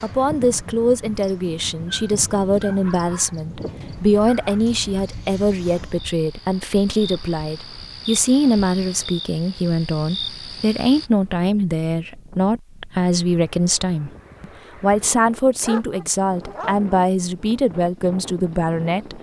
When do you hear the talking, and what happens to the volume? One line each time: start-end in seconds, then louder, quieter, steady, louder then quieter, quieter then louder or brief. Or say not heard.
0.0-19.1 steady.